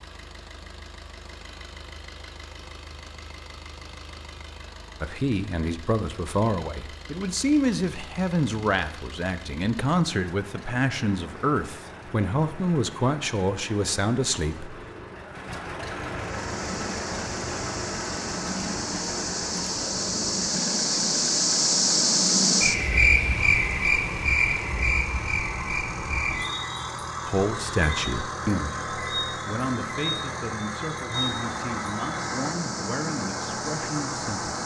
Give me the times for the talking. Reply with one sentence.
The talking can be heard from 5.0 to 14.8 s and from 27.2 to 34.5 s.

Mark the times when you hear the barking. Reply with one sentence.
The barking can't be heard in this clip.